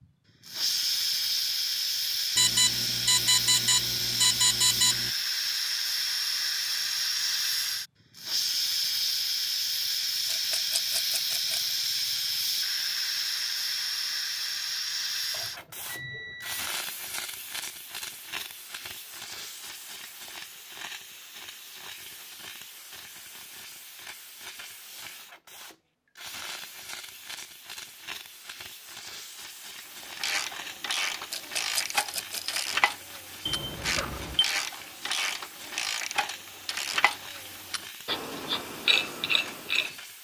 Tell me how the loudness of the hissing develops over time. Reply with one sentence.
The loudness of the hissing goes down.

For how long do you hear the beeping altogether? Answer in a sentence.
You can hear the beeping for 5 seconds altogether.